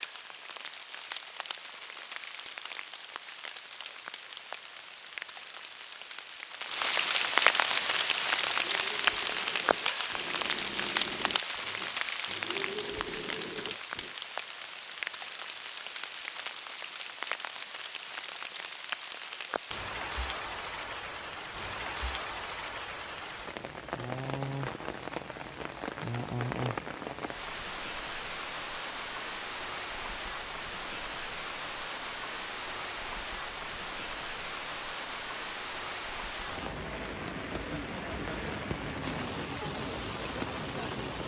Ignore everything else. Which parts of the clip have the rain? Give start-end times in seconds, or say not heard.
0.0-41.2.